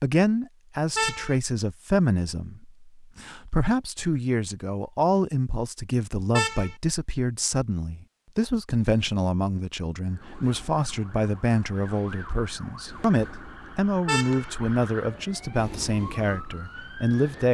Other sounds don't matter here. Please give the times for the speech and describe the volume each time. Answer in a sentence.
The speech can be heard from 0.0 to 17.4 s, at a steady volume.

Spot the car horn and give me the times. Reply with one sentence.
You can hear the car horn from 0.9 to 1.4 s, from 6.3 to 6.8 s and from 14.1 to 14.5 s.